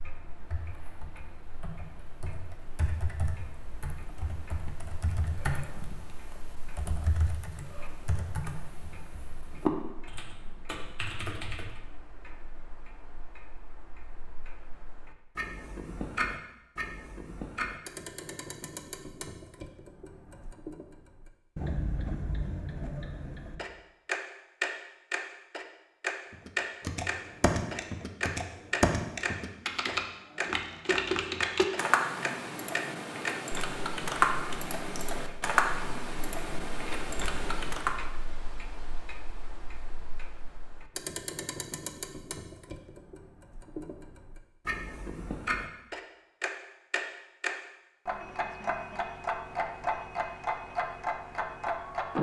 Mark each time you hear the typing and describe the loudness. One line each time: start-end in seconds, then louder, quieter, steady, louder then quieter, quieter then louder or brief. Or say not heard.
0.0-11.8 louder
26.3-38.0 steady.